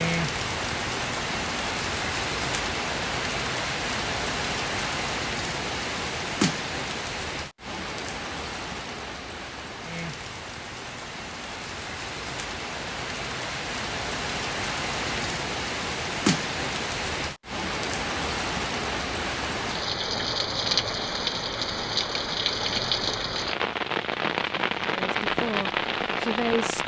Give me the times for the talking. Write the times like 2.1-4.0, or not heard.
24.9-26.8.